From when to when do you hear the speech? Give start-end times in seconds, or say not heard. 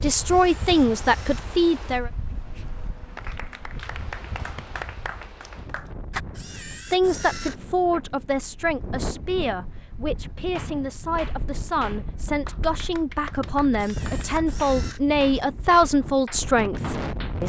0.0-2.1, 6.9-17.4.